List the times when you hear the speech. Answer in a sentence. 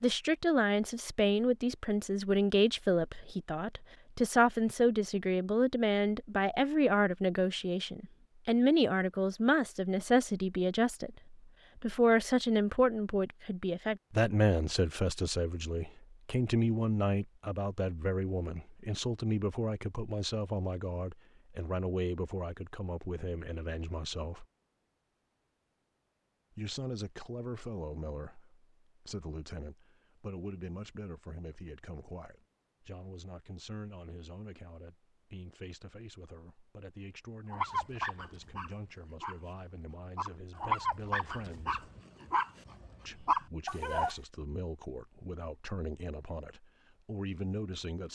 The speech can be heard from 0.0 to 24.4 s, from 26.6 to 41.9 s and from 43.0 to 48.1 s.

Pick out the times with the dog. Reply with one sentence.
You can hear the dog from 37.5 to 39.4 s and from 40.1 to 44.1 s.